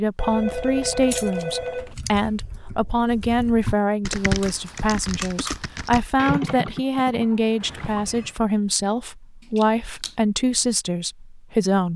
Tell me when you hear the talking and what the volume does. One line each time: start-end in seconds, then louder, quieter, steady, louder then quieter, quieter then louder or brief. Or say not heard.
0.0-11.9 steady.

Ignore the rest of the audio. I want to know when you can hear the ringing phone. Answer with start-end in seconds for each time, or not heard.
0.1-1.9, 7.6-8.3.